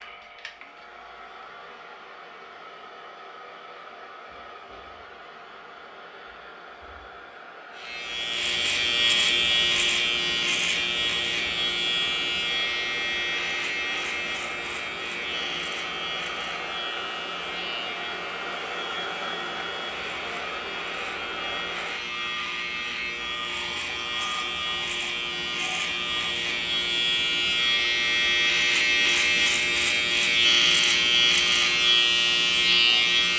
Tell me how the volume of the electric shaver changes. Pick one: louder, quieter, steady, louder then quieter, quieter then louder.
quieter then louder.